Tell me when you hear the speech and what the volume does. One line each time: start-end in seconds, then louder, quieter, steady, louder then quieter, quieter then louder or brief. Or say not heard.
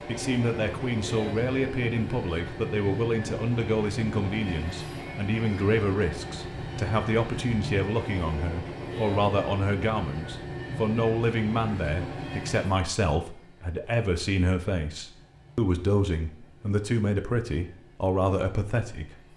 0.1-19.3 steady.